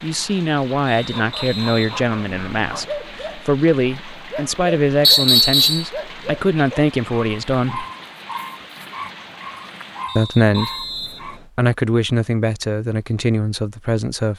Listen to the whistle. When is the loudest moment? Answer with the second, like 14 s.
5 s.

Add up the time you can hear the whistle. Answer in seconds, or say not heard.
4 s.